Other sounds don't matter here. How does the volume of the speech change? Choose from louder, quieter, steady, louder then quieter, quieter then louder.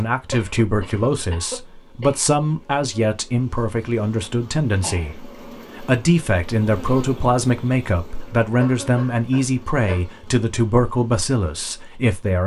steady.